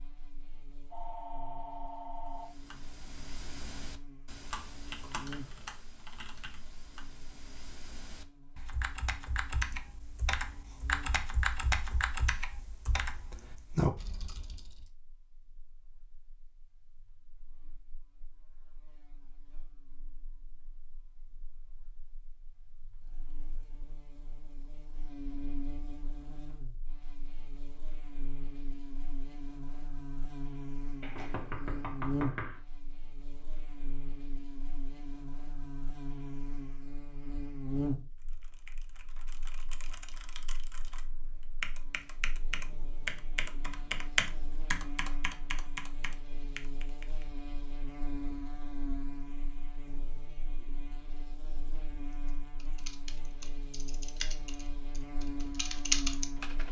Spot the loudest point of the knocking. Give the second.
32 s.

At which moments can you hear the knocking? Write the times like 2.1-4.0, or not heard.
31.0-32.6.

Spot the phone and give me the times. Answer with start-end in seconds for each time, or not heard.
0.9-2.5.